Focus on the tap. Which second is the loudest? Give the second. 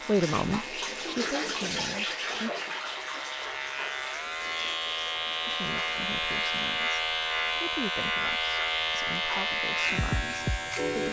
2 s.